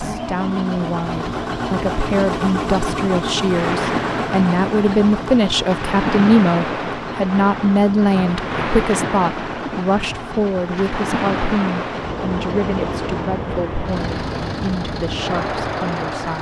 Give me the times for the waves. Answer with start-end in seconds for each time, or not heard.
3.5-16.3.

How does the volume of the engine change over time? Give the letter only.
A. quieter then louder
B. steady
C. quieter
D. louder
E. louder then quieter
C.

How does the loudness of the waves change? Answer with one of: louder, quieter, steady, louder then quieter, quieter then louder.
steady.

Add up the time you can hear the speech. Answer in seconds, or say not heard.
16 s.